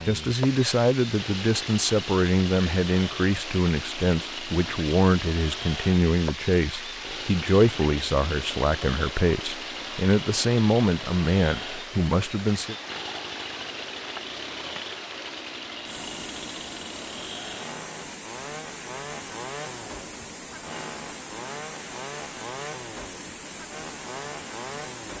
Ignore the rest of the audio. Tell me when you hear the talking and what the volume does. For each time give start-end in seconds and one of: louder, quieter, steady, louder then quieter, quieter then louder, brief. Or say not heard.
0.1-12.8 steady.